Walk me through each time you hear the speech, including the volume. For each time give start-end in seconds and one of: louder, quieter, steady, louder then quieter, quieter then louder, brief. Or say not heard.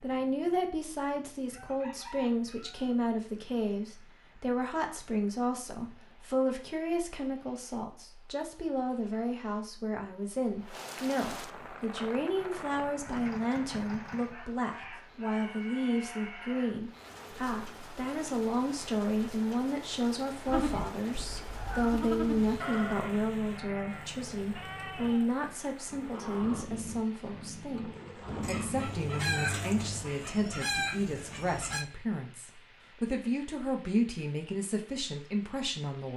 0.0-36.1 steady.